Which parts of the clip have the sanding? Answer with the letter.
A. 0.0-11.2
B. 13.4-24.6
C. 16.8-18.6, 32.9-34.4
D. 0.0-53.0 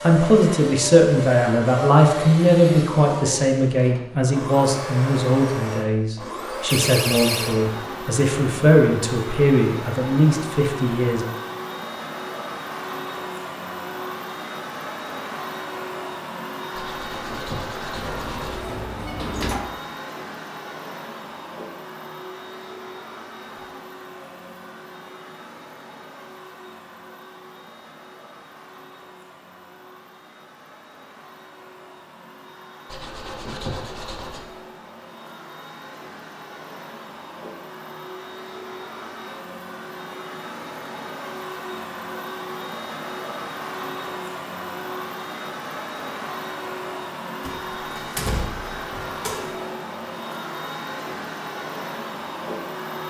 C.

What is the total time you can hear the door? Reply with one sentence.
You can hear the door for 5 seconds altogether.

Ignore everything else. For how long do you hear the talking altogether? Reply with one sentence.
You can hear the talking for 11 seconds altogether.